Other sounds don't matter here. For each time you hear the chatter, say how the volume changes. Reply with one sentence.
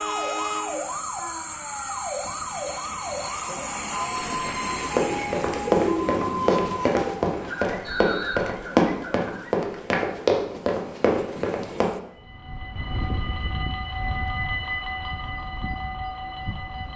The chatter can't be heard in this clip.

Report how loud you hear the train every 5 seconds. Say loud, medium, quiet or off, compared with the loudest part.
loud, medium, loud, loud.